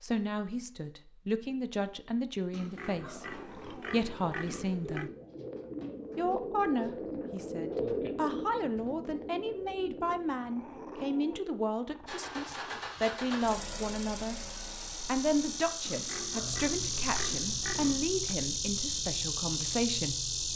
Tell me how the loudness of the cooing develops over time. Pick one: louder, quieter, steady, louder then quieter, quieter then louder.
louder then quieter.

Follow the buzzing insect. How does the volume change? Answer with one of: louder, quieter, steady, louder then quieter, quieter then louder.
louder.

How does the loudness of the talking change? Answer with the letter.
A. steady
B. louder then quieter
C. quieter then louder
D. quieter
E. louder
A.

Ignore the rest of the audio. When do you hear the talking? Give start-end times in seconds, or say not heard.
0.0-5.1, 6.2-14.4, 15.1-20.1.